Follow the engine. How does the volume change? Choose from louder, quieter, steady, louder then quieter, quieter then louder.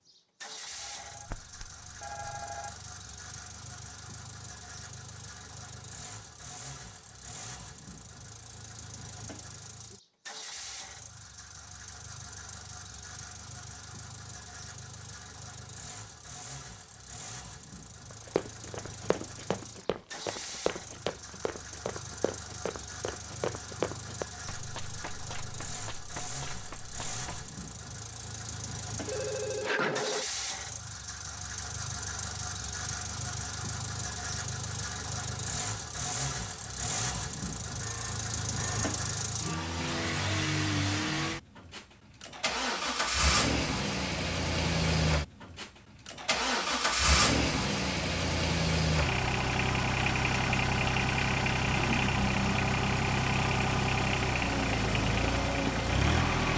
louder.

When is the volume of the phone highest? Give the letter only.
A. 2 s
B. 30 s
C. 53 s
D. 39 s
B.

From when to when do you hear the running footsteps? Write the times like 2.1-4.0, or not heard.
18.1-27.5.